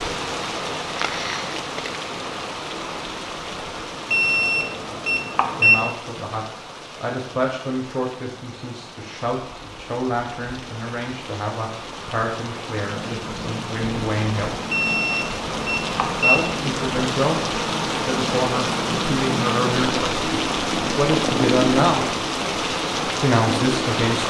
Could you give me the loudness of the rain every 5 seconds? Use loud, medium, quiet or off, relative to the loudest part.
medium, quiet, medium, loud, loud.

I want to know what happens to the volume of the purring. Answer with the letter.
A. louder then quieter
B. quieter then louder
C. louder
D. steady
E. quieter
C.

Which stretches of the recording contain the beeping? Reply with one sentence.
You can hear the beeping from 4.1 to 6.0 s and from 14.7 to 16.4 s.